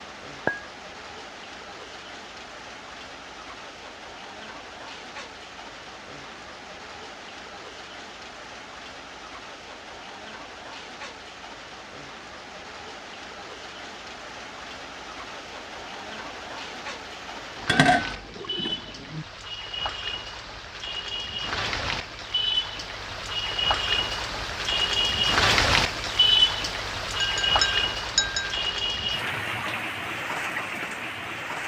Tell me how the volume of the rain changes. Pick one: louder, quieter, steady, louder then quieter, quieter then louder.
louder.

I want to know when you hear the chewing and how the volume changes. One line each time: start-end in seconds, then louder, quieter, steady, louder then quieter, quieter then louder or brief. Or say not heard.
not heard.